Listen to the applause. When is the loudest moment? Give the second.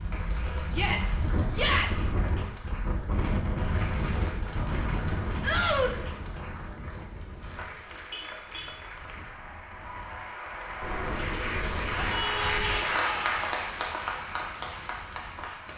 13 s.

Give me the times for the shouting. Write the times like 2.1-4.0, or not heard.
0.7-2.1, 5.4-6.0, 11.9-13.4.